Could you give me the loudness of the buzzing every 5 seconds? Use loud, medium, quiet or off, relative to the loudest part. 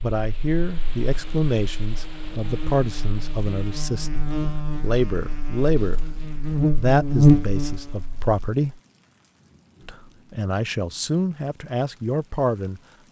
quiet, loud, off.